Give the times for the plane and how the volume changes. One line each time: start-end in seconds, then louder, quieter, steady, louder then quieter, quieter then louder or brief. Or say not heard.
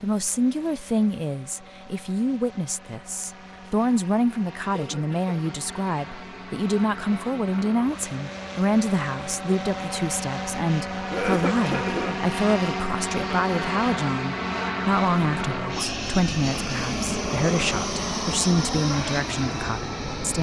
0.0-20.3 louder.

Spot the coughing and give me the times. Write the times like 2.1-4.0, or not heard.
4.7-5.3, 11.1-12.2.